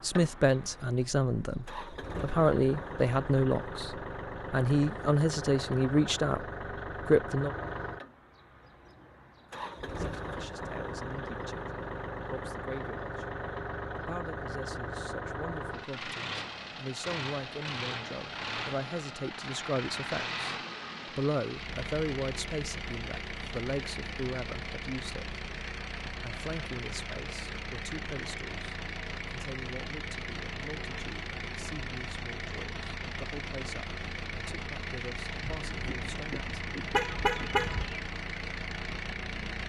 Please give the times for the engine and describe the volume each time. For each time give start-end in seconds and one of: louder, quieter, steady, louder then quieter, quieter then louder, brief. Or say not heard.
0.0-39.6 steady.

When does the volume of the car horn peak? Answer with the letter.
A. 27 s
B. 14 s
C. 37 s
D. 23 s
C.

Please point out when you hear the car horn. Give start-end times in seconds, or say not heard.
35.4-38.0.